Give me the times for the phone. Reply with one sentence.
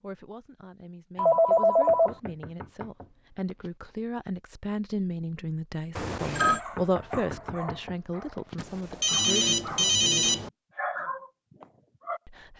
The phone can be heard from 1.1 to 2.1 s, from 6.0 to 6.6 s and from 8.6 to 10.5 s.